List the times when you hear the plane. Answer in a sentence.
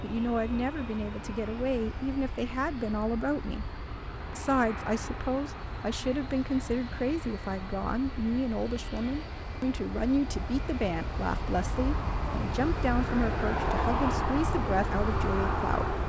You can hear the plane from 0.0 to 16.0 s.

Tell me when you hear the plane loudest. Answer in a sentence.
The volume of the plane peaks at 14 seconds.